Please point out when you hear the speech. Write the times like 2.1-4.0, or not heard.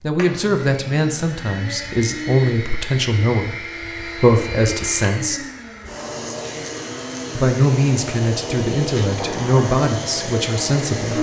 0.0-5.5, 7.3-11.1.